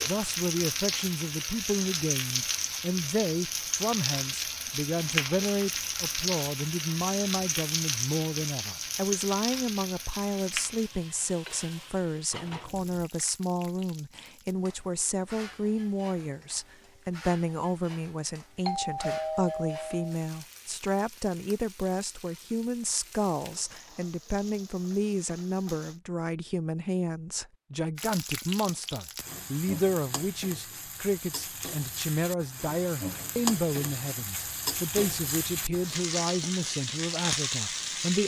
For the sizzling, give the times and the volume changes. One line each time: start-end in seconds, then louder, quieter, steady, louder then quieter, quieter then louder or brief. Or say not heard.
0.0-26.0 quieter
27.9-38.2 louder.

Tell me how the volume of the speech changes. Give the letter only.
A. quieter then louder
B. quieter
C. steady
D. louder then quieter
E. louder
C.